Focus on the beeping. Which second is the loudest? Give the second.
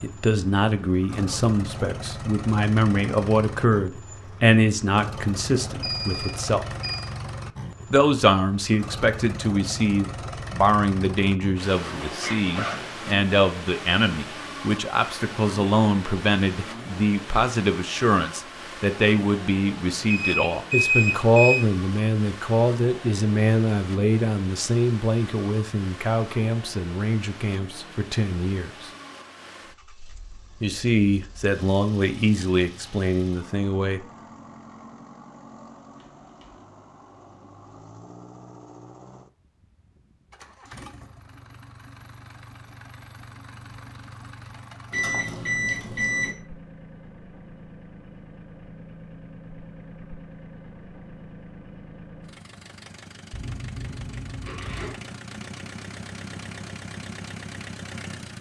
21 s.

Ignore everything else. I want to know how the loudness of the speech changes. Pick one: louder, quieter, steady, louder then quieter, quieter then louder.
steady.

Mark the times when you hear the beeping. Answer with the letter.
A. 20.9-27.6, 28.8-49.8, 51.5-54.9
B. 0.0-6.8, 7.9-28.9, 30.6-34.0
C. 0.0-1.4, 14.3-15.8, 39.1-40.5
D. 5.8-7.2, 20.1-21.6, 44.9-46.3
D.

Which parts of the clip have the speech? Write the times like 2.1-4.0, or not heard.
0.0-6.8, 7.9-28.9, 30.6-34.0.